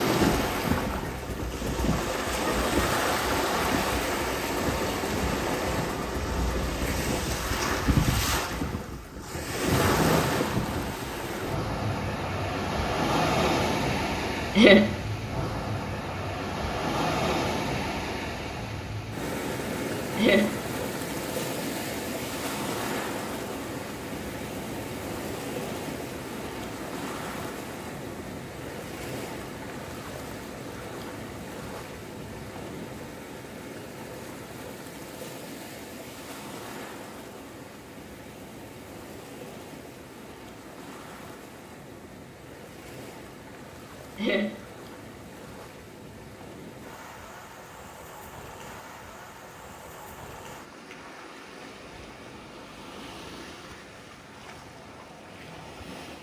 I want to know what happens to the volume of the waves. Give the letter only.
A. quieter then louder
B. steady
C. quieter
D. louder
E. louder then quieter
C.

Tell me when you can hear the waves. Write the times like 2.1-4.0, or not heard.
0.0-56.1.